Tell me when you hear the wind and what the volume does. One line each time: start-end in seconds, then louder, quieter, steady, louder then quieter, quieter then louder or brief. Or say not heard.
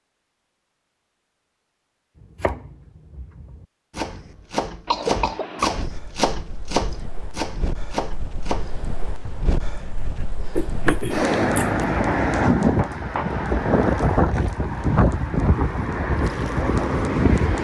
5.8-17.5 louder.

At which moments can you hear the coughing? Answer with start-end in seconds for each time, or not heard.
4.8-5.8, 10.6-11.8.